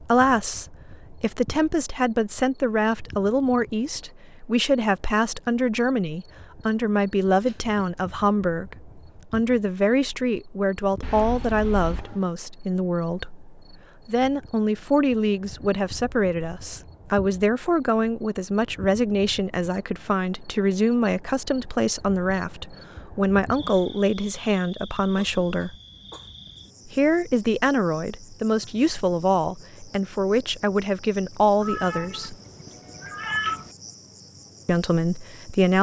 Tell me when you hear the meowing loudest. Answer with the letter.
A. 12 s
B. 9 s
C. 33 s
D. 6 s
C.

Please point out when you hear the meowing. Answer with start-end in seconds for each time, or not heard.
11.0-12.2, 31.6-33.7.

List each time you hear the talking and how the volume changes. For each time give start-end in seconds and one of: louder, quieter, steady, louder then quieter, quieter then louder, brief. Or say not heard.
0.0-25.8 steady
26.9-32.4 steady
34.6-35.7 brief.